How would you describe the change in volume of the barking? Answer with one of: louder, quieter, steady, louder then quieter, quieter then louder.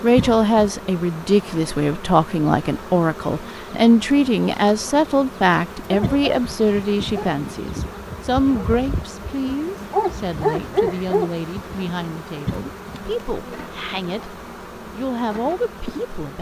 louder.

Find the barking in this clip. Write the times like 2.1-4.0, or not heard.
5.8-11.8.